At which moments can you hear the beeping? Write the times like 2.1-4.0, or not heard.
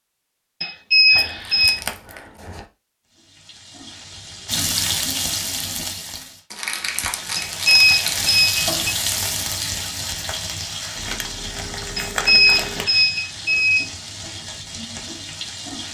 0.6-1.8, 7.3-8.7, 11.9-13.9.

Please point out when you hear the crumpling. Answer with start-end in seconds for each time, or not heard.
1.1-2.6, 6.5-8.5, 10.9-12.8.